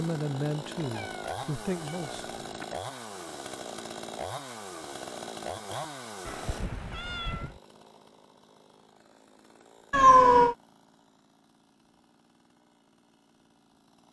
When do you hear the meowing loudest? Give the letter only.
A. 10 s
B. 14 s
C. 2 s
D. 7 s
A.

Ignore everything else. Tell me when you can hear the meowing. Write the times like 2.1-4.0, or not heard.
0.8-2.6, 6.2-7.6, 9.9-10.6.